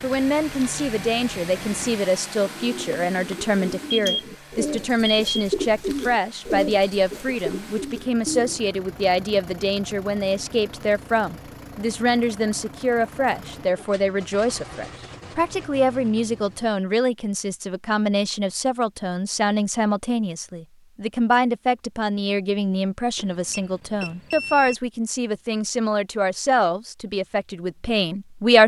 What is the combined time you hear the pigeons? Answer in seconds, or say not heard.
9 s.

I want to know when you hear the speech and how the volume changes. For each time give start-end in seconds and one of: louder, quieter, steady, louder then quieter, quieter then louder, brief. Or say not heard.
0.0-28.6 steady.